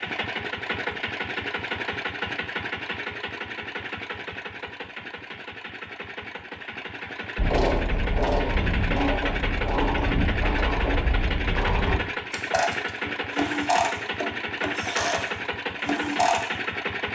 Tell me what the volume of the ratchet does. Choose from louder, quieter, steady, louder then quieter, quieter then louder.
steady.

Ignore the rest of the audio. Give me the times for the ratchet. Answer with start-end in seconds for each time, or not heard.
7.3-16.6.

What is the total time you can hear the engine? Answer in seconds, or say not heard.
17 s.